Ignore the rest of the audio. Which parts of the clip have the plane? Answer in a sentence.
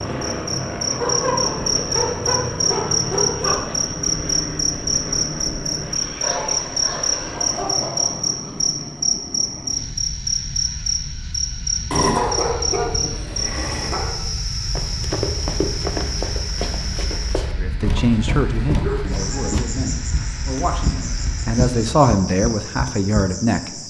You can hear the plane from 0.0 to 22.2 s.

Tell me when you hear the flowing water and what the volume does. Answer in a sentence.
The flowing water can't be heard in this clip.